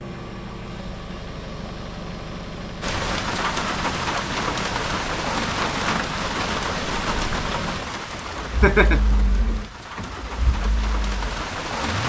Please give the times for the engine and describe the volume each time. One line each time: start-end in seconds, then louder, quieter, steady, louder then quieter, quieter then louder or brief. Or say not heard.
0.0-12.0 steady.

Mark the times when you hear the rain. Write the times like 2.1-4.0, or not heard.
2.8-12.0.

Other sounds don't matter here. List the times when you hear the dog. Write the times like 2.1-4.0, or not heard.
not heard.